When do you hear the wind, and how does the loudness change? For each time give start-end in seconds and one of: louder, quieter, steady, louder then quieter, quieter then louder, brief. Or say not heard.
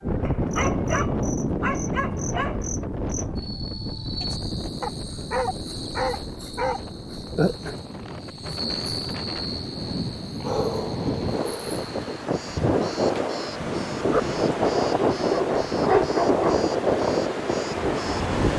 0.0-18.5 quieter then louder.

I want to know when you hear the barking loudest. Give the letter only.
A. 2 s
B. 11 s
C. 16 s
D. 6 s
C.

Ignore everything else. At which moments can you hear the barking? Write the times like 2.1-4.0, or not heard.
0.2-2.6, 4.8-6.8, 10.4-11.8, 14.1-16.6.